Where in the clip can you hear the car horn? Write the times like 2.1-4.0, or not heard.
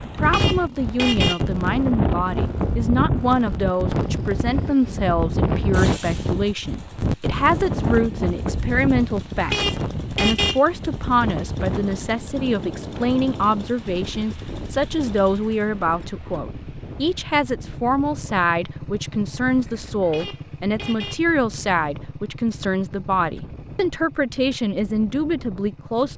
0.2-1.4, 9.4-10.6, 20.0-21.2.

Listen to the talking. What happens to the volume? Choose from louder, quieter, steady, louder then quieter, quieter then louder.
steady.